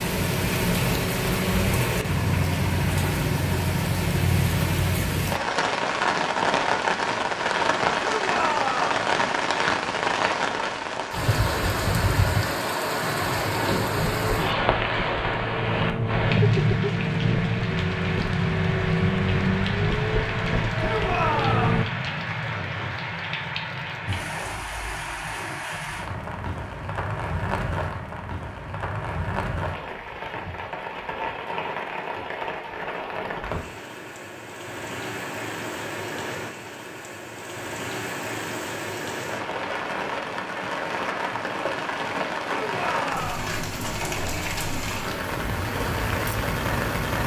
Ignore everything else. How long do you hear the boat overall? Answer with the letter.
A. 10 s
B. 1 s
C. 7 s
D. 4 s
A.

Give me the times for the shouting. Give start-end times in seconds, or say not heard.
8.0-8.9, 20.8-21.9, 42.6-43.5.